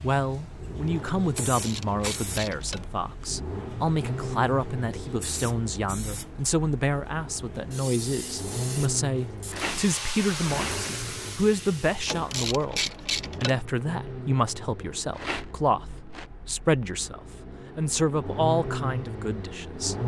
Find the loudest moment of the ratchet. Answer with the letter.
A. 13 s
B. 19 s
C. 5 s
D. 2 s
A.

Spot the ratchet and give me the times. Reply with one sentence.
The ratchet can be heard from 1.4 to 2.9 s and from 12.1 to 13.6 s.